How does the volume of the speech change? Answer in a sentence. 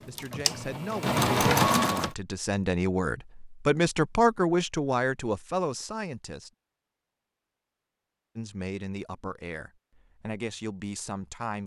The volume of the speech goes up, then down.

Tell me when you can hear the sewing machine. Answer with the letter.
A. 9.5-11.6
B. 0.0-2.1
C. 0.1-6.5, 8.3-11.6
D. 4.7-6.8
B.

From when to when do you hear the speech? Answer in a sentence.
You can hear the speech from 0.1 to 6.5 s and from 8.3 to 11.6 s.